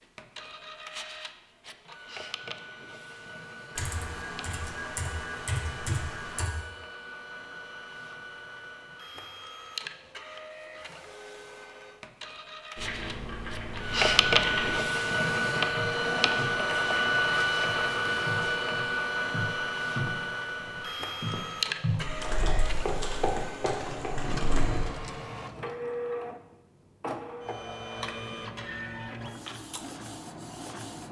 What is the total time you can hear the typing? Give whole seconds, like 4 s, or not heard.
8 s.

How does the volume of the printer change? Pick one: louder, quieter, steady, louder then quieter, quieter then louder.
louder then quieter.